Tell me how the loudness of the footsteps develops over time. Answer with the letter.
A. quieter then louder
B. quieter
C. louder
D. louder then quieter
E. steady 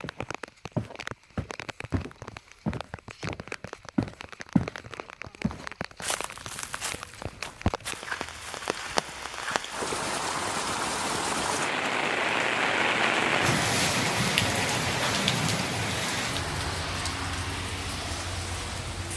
B.